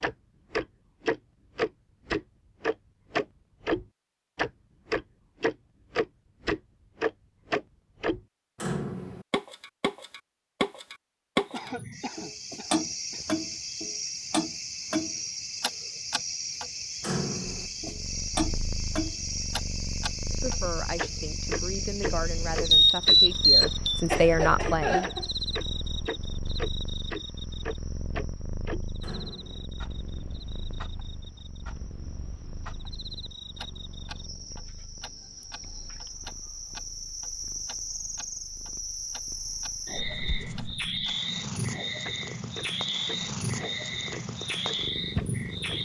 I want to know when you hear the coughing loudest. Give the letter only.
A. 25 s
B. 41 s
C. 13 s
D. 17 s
A.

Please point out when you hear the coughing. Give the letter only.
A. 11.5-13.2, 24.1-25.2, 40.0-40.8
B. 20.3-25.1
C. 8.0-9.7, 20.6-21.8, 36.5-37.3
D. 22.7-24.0
A.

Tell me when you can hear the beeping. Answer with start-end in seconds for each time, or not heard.
22.7-24.0.